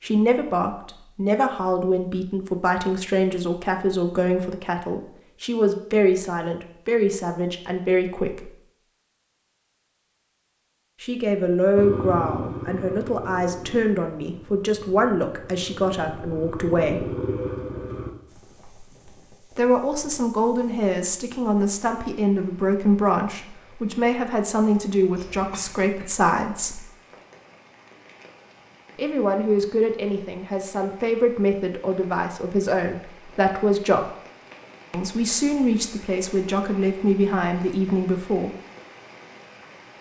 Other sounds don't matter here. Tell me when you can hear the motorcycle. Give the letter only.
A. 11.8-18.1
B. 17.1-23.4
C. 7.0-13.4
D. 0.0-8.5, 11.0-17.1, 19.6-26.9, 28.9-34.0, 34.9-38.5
A.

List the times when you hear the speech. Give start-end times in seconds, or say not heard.
0.0-8.5, 11.0-17.1, 19.6-26.9, 28.9-34.0, 34.9-38.5.